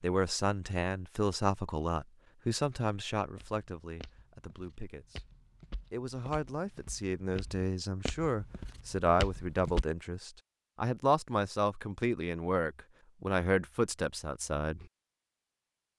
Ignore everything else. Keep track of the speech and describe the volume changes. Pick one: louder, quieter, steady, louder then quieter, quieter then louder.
quieter then louder.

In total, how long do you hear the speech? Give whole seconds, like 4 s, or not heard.
14 s.